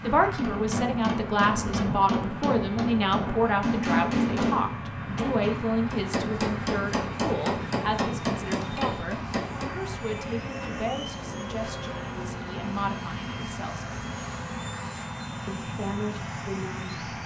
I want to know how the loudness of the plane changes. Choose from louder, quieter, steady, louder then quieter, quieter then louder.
steady.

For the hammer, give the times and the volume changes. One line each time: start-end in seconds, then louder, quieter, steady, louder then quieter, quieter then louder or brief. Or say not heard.
0.2-9.8 steady.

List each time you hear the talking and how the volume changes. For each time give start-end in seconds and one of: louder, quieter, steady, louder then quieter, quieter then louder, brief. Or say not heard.
0.0-13.9 quieter
15.4-17.0 brief.